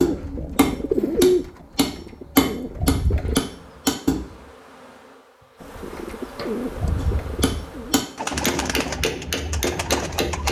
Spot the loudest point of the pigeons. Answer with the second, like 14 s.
1 s.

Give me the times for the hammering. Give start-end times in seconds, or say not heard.
0.0-4.4, 7.0-10.4.